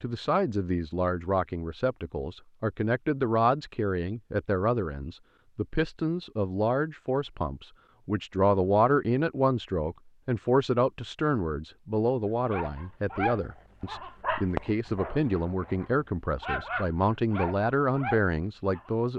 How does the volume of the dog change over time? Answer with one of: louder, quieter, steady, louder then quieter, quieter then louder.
quieter then louder.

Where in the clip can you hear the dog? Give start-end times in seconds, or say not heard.
12.4-18.9.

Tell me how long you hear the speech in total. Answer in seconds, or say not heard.
19 s.